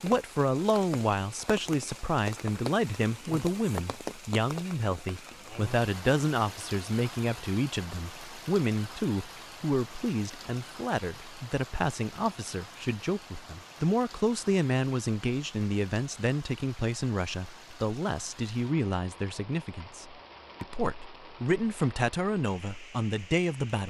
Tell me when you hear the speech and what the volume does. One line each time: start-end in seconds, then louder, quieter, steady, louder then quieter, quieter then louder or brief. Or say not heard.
0.0-23.8 steady.